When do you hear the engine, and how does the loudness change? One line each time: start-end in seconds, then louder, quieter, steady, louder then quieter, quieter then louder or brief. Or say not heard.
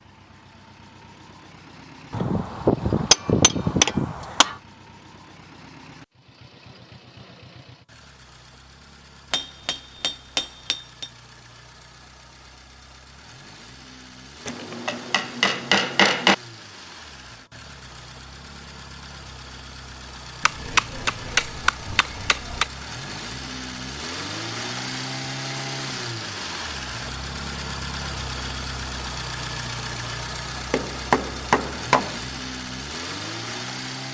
0.0-34.0 louder.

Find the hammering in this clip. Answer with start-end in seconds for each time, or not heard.
2.1-4.6, 9.3-11.1, 14.4-16.4, 20.4-22.6, 30.7-32.2.